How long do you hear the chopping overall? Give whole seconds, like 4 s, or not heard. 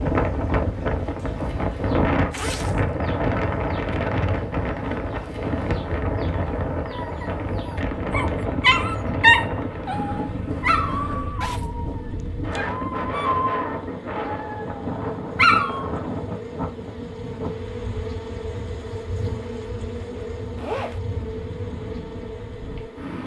not heard.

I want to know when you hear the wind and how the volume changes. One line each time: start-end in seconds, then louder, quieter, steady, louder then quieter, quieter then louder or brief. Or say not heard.
0.0-23.2 quieter.